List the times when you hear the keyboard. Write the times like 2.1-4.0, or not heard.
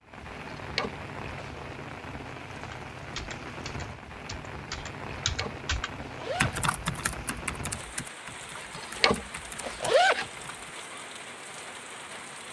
2.6-10.8.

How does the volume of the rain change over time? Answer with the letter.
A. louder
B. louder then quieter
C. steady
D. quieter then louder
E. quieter
C.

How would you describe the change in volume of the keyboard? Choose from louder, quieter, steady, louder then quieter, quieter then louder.
louder then quieter.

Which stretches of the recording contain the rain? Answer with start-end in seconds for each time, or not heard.
0.0-12.4.